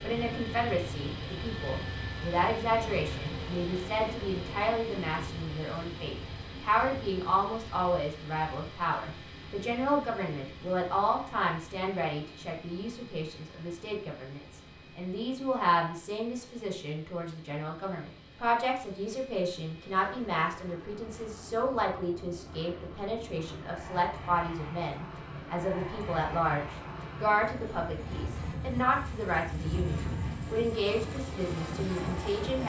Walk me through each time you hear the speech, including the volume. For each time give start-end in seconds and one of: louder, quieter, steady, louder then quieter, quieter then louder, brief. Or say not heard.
0.0-32.6 steady.